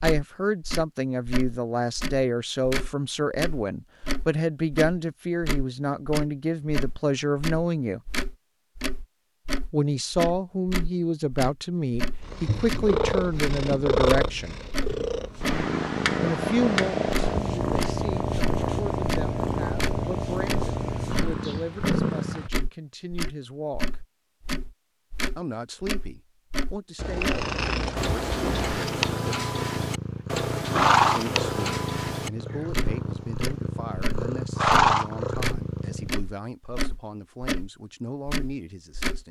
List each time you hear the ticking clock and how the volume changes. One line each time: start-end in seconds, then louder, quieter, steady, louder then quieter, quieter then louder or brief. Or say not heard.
0.0-39.2 steady.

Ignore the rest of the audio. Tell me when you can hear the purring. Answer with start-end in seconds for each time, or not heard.
12.2-22.5, 26.9-36.1.